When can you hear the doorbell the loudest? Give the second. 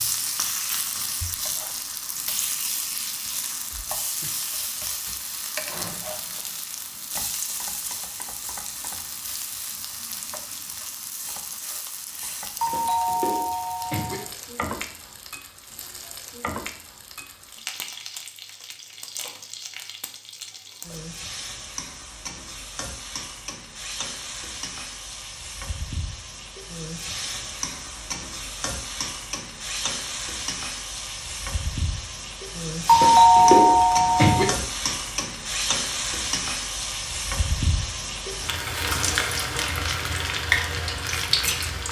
33 s.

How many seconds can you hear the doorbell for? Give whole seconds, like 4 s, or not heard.
3 s.